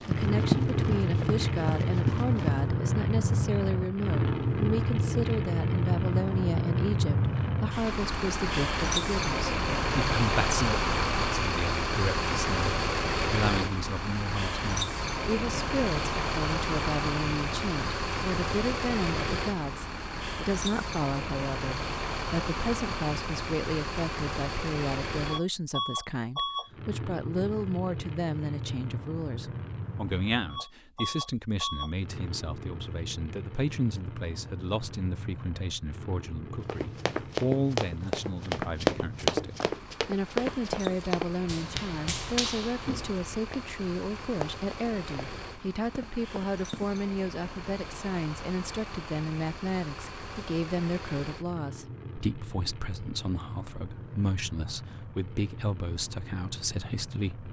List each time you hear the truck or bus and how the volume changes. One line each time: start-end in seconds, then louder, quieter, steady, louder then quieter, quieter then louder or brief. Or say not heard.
0.0-57.4 quieter.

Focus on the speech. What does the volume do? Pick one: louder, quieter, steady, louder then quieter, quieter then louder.
steady.